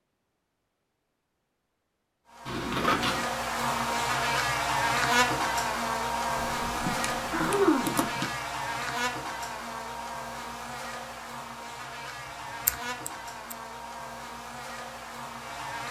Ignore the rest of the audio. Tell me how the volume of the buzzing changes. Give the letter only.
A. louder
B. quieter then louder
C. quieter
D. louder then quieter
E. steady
C.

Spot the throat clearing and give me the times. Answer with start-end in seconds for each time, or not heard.
6.8-8.2.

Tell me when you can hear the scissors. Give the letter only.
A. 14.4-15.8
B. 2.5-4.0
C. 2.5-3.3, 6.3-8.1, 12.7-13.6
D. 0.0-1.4
C.